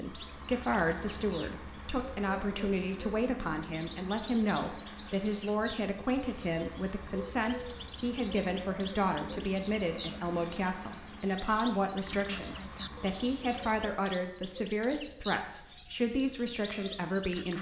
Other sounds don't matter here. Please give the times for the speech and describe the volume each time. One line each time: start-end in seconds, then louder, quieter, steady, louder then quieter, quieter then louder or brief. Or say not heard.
0.0-17.5 steady.